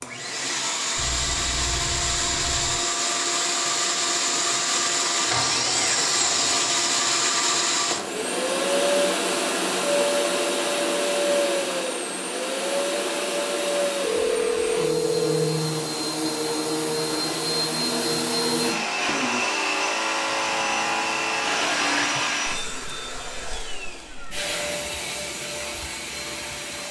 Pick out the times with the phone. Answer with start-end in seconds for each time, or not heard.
0.9-2.8, 14.0-15.7, 20.2-22.4.